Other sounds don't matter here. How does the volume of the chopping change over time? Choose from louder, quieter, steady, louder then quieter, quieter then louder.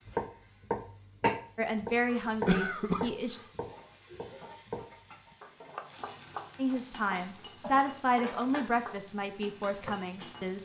quieter.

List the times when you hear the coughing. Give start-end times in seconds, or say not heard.
2.2-3.5, 7.6-8.6.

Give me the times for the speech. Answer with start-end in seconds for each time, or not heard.
1.6-3.4, 6.5-10.5.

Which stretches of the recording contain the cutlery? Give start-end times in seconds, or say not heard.
not heard.